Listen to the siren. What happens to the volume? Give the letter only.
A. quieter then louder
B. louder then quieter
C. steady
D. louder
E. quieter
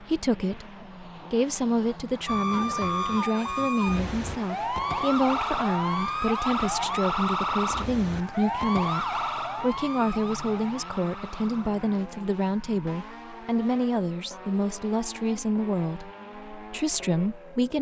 E.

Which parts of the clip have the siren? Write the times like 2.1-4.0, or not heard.
2.2-17.7.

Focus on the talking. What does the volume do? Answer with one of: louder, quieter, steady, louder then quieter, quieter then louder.
steady.